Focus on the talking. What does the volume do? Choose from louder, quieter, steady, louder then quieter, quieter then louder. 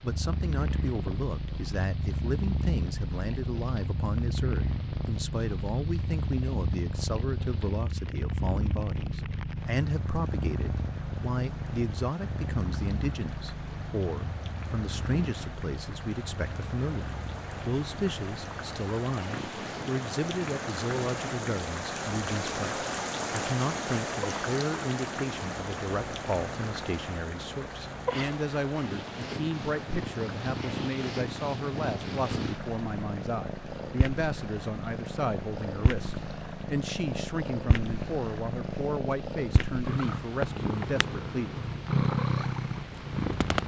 steady.